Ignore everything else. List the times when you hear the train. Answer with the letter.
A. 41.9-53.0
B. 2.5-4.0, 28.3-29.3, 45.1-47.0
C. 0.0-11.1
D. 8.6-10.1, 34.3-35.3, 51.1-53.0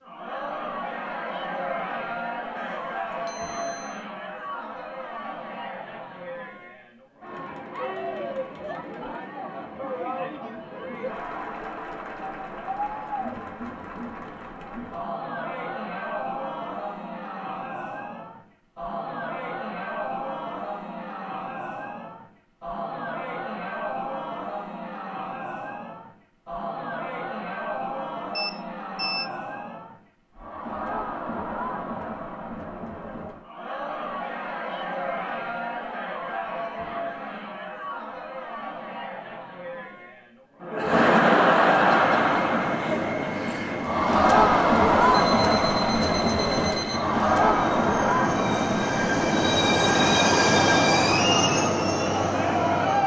A.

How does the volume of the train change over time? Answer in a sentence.
The volume of the train goes up.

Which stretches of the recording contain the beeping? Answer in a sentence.
The beeping can be heard from 2.5 to 4.0 s, from 28.3 to 29.3 s and from 45.1 to 47.0 s.